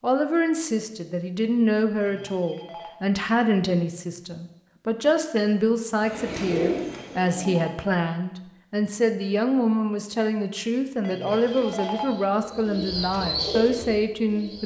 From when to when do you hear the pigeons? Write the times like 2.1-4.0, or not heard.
6.0-7.7, 11.2-14.6.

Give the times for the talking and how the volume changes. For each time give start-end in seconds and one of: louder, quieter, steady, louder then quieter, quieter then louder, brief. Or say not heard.
0.0-14.6 steady.